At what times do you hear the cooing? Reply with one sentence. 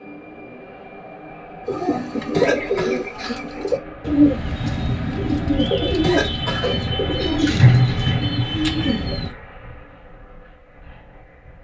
You can hear the cooing from 1.6 to 9.3 s.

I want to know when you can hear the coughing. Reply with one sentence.
The coughing can be heard from 2.3 to 3.0 s and from 6.0 to 6.9 s.